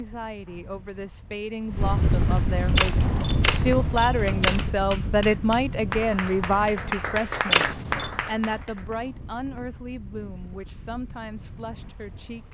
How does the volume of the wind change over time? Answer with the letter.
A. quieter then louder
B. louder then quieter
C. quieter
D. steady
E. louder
C.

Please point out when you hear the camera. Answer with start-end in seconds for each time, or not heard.
2.7-4.7, 7.5-8.2.